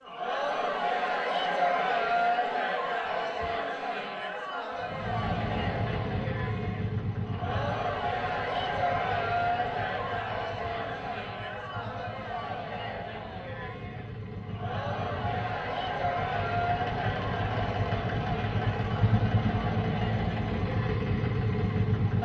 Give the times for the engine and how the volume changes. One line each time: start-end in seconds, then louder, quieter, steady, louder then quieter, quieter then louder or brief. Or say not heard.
4.8-22.2 quieter then louder.